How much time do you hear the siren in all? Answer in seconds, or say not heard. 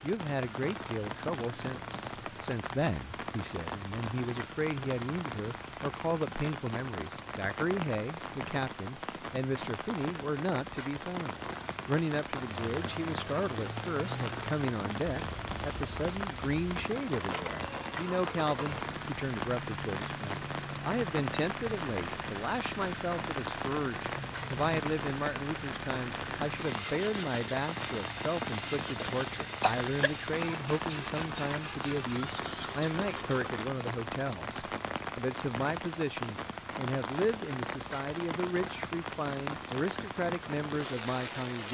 not heard.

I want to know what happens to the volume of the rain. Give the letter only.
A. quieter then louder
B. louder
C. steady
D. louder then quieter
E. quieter
C.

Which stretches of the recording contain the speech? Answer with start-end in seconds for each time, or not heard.
0.0-41.7.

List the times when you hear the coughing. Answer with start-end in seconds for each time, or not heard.
29.0-30.1.